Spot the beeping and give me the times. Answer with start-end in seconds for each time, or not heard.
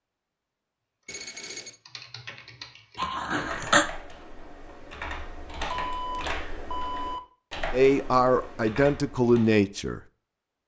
1.1-1.8, 5.7-7.2.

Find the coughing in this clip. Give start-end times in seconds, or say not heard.
3.0-3.9.